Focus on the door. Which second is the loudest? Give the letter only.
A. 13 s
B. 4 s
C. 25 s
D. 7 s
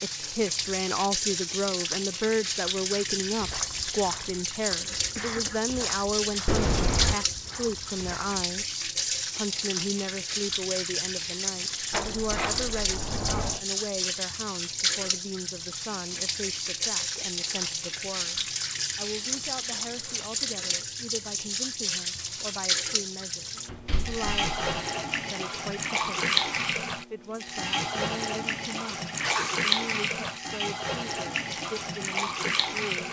D.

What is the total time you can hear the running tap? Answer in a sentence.
The running tap can be heard for 33 seconds in total.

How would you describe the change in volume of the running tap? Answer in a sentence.
The loudness of the running tap stays about the same.